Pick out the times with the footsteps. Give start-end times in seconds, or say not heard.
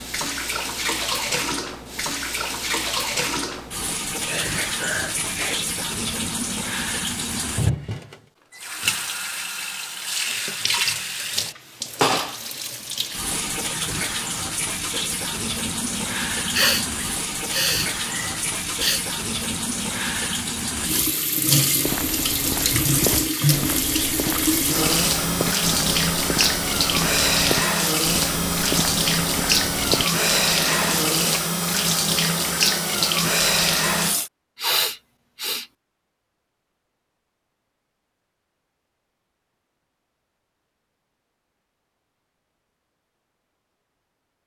21.8-31.4.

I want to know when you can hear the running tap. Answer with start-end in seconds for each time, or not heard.
0.0-34.3.